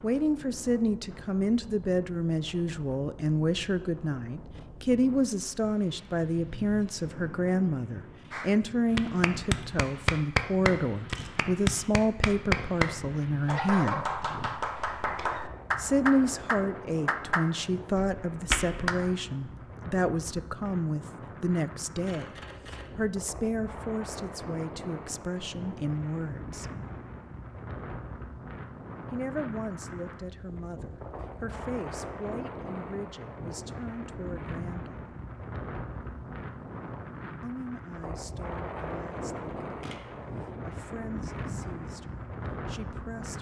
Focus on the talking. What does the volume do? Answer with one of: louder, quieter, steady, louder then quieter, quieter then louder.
quieter.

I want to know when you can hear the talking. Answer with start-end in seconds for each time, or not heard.
0.0-14.1, 15.8-26.7, 29.1-35.0, 37.4-43.3.